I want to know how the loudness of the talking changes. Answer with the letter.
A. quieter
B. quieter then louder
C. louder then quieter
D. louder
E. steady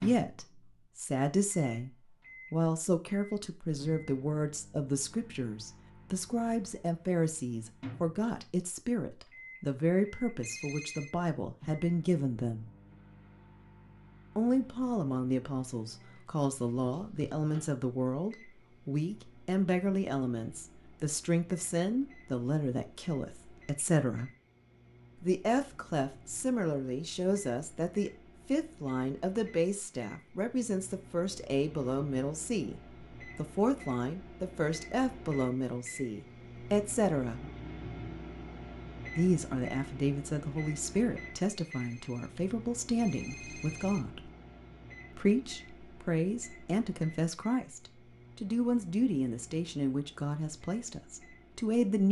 E.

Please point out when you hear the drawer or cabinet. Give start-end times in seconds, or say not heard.
not heard.